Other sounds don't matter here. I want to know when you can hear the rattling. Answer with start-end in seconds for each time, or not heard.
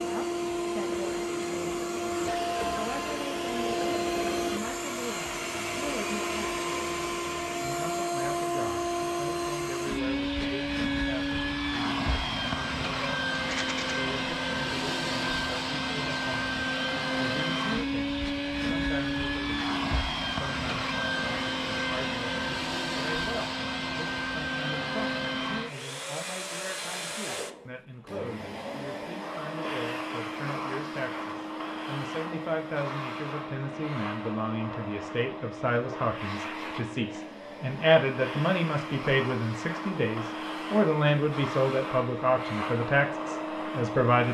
13.3-13.9.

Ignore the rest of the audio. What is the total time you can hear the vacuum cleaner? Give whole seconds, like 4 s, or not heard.
44 s.